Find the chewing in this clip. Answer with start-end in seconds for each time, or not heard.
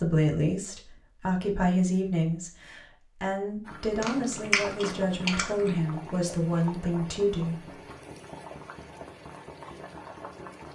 4.0-5.8.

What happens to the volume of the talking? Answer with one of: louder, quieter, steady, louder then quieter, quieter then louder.
steady.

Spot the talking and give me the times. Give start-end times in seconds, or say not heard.
0.0-7.6.